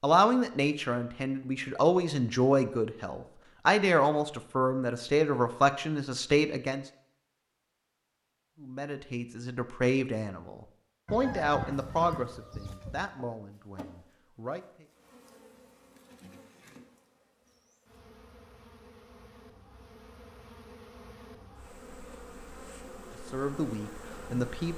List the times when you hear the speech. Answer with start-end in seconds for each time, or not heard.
0.0-6.8, 8.6-14.8, 23.2-24.7.